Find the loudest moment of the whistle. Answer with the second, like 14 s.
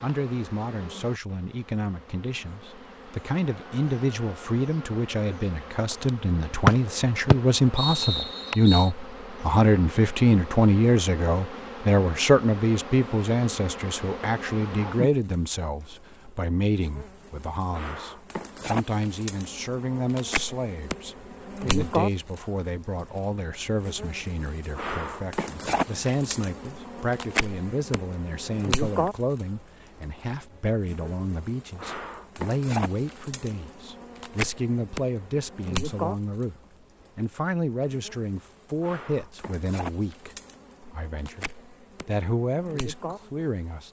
7 s.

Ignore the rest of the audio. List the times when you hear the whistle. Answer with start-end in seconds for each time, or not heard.
6.7-8.9.